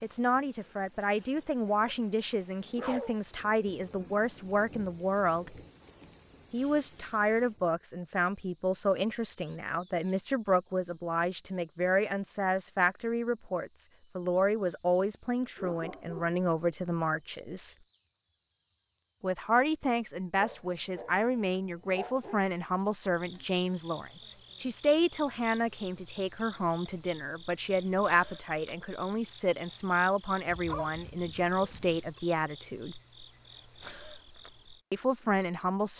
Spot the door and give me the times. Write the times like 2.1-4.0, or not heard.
not heard.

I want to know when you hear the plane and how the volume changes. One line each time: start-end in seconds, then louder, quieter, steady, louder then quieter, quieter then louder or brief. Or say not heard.
not heard.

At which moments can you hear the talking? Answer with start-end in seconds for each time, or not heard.
0.0-5.5, 6.5-17.8, 19.2-33.0, 34.9-35.9.